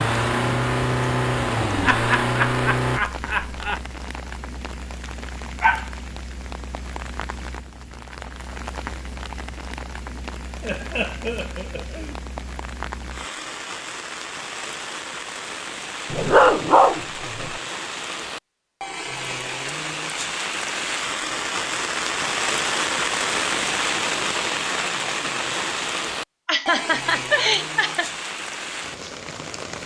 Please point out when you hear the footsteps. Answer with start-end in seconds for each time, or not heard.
not heard.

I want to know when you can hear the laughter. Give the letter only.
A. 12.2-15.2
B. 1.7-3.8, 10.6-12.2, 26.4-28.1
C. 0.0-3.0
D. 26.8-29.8
B.